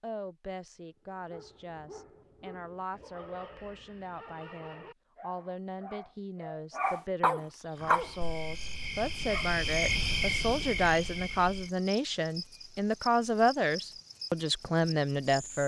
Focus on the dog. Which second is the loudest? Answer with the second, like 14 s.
8 s.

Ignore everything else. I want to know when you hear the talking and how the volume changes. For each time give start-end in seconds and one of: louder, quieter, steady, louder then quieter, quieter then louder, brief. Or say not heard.
0.0-15.6 louder.